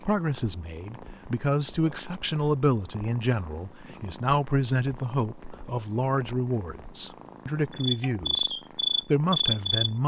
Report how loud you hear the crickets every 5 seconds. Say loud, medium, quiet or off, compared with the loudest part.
quiet, loud.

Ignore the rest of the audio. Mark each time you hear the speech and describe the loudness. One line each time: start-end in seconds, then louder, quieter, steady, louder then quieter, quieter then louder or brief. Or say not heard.
0.0-10.0 steady.